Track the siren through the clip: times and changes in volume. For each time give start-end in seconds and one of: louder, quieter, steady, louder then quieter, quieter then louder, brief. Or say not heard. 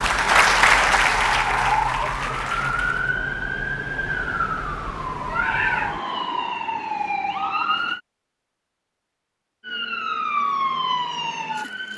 0.0-8.0 steady
9.6-11.9 brief.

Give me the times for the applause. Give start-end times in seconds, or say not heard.
0.0-3.1.